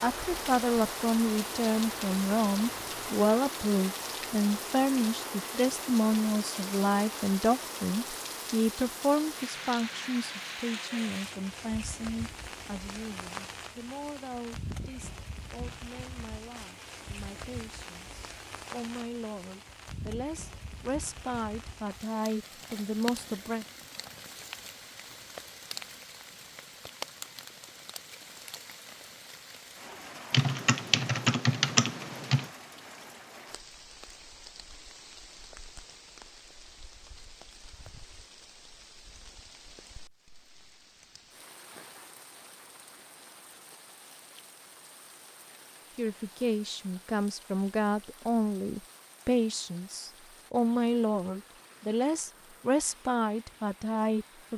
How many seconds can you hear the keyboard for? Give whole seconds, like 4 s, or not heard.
2 s.